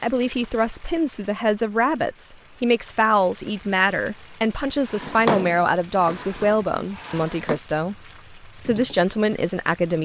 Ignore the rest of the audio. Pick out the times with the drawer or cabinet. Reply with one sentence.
You can hear the drawer or cabinet from 4.8 to 7.6 s.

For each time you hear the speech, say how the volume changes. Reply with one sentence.
The speech can be heard from 0.0 to 10.0 s, at a steady volume.